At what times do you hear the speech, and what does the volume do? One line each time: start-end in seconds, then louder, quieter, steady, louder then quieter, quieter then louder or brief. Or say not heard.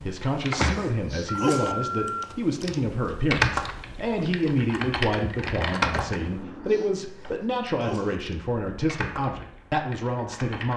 0.0-10.7 steady.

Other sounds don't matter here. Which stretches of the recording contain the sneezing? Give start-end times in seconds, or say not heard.
0.7-1.8, 7.0-8.2.